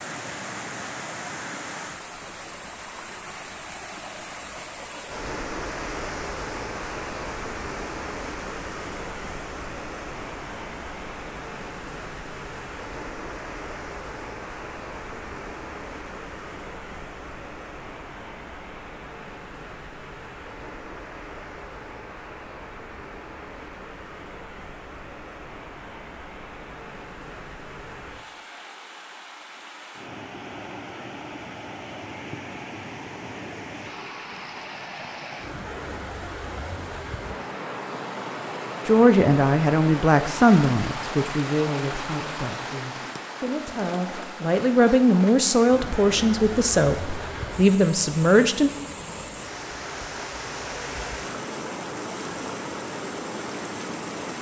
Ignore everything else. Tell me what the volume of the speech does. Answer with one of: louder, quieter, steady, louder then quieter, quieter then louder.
quieter then louder.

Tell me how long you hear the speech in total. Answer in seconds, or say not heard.
10 s.